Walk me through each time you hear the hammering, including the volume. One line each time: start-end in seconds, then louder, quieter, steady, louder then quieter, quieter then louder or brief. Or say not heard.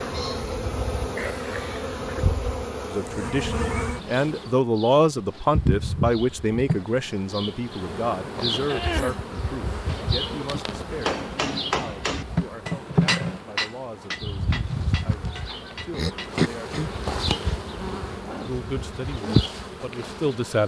10.9-16.4 quieter.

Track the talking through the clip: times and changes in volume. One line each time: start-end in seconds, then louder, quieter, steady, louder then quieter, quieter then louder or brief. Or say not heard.
2.9-16.8 quieter
18.4-20.6 brief.